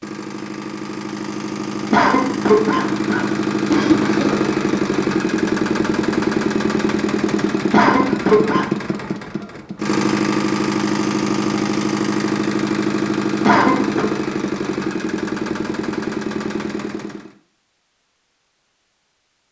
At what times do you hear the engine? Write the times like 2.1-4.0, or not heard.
0.0-17.4.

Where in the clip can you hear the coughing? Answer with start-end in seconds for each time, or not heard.
1.9-4.3, 7.7-8.7, 13.4-14.1.